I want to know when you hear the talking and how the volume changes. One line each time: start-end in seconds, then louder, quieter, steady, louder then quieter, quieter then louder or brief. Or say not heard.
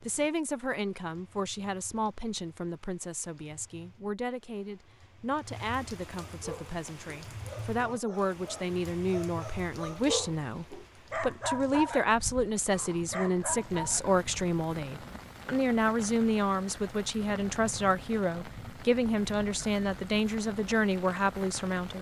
0.0-21.9 louder.